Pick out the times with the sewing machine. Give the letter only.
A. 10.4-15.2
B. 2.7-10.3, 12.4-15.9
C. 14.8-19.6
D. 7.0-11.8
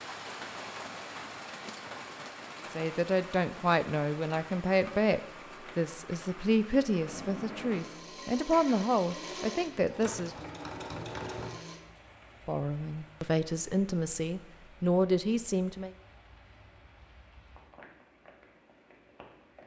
D.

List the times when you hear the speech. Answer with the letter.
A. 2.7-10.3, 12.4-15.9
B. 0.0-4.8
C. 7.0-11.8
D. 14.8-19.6
A.